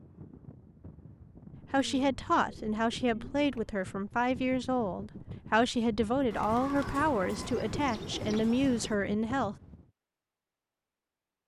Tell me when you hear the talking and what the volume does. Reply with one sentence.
You can hear the talking from 1.7 to 9.6 s, at a steady volume.